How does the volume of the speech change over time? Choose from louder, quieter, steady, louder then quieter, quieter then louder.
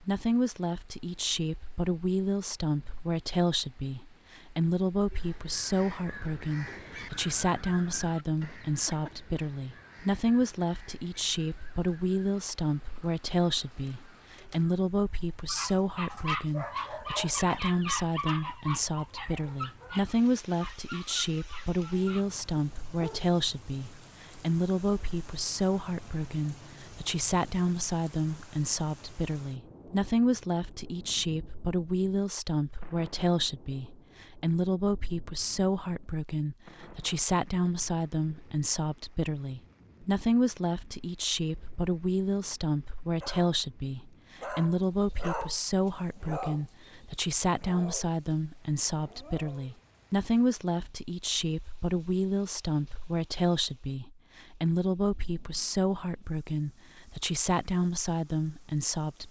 steady.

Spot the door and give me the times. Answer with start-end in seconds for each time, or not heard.
not heard.